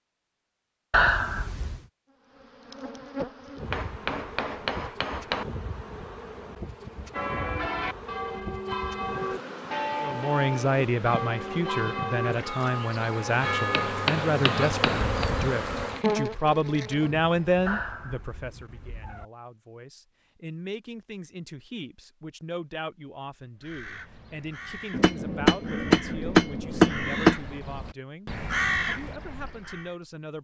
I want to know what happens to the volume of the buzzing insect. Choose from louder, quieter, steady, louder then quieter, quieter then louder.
louder.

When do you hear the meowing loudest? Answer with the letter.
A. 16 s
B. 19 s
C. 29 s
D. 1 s
D.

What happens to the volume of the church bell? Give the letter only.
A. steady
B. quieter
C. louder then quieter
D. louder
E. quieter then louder
A.